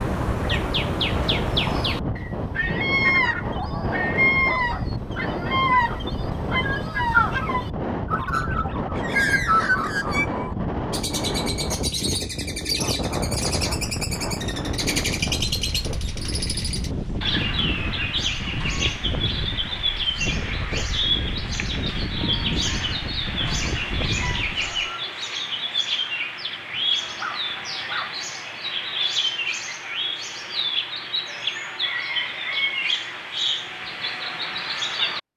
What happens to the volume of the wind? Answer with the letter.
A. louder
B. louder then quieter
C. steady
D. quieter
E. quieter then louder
C.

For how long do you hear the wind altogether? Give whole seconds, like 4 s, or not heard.
25 s.